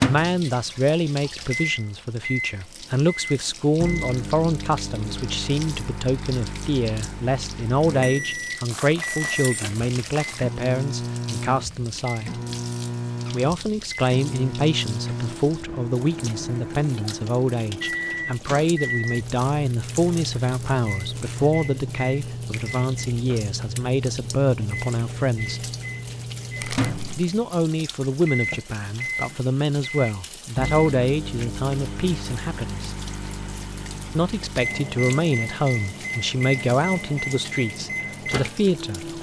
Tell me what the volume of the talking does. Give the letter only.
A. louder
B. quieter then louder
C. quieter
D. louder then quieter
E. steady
E.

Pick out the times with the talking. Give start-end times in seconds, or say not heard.
0.0-12.4, 13.3-25.6, 27.1-33.0, 34.1-39.1.